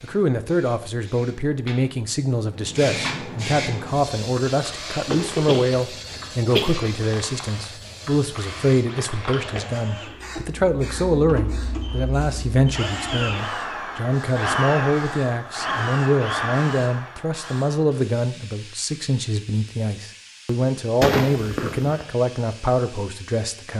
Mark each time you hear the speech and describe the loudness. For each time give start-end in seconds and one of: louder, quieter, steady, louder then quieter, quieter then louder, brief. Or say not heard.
0.0-23.7 steady.